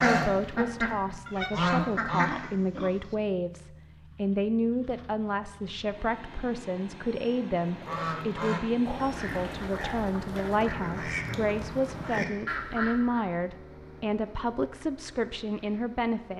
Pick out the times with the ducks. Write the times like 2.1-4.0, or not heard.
0.0-2.5, 7.6-13.2.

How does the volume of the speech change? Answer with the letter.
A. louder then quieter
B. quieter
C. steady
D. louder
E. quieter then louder
C.